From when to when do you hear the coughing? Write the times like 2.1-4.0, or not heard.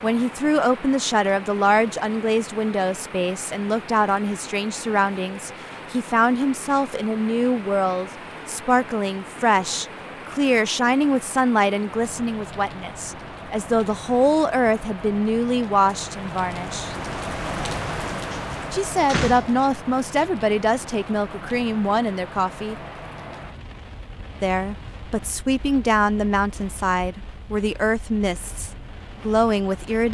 not heard.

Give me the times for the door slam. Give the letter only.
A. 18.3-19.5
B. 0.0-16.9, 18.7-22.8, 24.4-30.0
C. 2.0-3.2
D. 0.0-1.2
A.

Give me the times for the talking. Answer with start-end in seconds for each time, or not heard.
0.0-16.9, 18.7-22.8, 24.4-30.0.